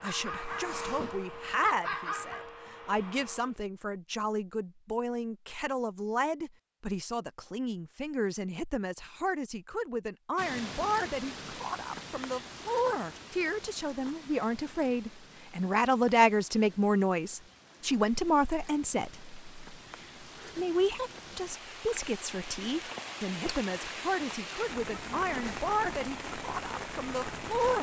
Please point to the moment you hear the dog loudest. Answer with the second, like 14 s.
2 s.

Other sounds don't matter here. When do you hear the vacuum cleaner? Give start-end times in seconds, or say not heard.
0.0-3.6.